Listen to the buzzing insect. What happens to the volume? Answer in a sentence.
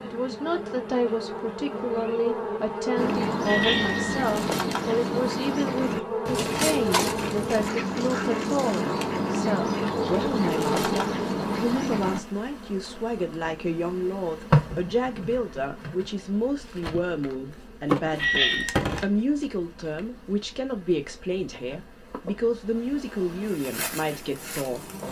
The volume of the buzzing insect goes down.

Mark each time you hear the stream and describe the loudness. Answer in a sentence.
You can't hear the stream here.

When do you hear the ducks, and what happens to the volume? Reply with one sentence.
You can hear the ducks from 3.0 to 12.2 s, at a steady volume.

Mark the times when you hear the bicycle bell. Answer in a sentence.
The bicycle bell can be heard from 3.5 to 4.2 s and from 18.1 to 18.8 s.